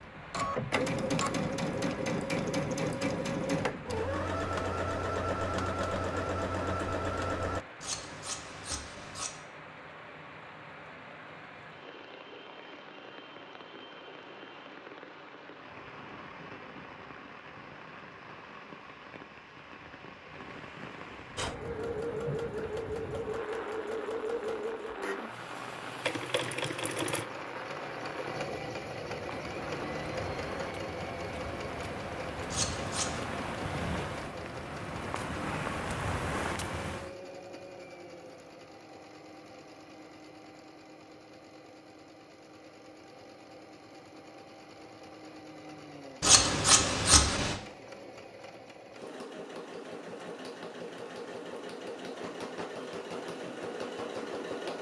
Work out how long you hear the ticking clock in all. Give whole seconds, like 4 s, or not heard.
not heard.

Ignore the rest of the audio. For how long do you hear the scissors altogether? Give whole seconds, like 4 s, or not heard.
4 s.